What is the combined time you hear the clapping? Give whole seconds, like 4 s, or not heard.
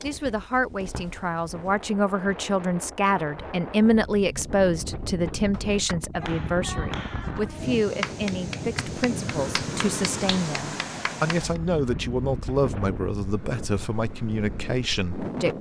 6 s.